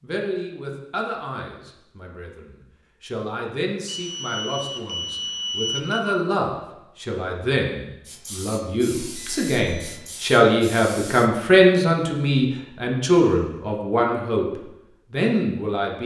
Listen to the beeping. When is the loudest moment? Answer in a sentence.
The volume of the beeping peaks at 6 seconds.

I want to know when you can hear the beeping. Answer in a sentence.
The beeping can be heard from 3.9 to 6.0 s and from 9.1 to 9.9 s.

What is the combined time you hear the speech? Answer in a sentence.
You can hear the speech for 16 seconds altogether.